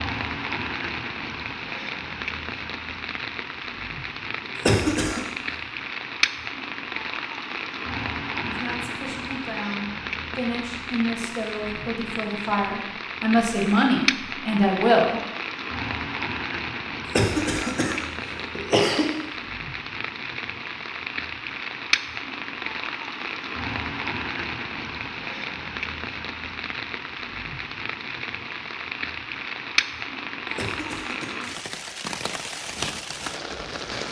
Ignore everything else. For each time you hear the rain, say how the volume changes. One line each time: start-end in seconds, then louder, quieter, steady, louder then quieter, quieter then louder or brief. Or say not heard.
0.0-34.0 steady.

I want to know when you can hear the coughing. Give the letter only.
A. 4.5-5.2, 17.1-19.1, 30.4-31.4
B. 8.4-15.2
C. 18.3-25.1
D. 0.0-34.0
A.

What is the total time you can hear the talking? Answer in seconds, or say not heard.
7 s.